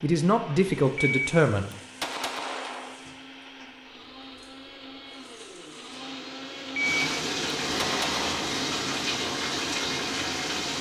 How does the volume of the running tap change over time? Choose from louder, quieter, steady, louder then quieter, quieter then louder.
quieter then louder.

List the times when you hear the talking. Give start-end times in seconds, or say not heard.
0.0-1.7.